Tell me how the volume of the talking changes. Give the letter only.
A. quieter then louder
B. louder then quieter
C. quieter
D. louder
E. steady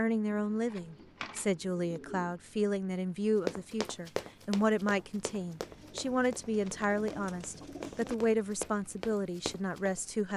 E.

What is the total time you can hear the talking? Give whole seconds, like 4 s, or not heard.
10 s.